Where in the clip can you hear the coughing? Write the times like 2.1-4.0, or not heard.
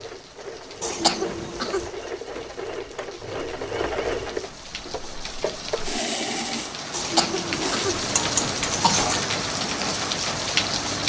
0.8-1.9, 6.9-9.2.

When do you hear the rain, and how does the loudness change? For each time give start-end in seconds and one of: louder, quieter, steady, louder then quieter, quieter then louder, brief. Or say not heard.
0.0-11.0 louder.